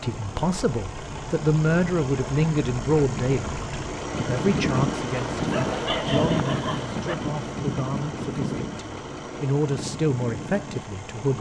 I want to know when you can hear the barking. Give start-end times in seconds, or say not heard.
5.3-7.2.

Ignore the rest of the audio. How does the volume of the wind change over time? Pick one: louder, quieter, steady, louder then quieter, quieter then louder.
louder then quieter.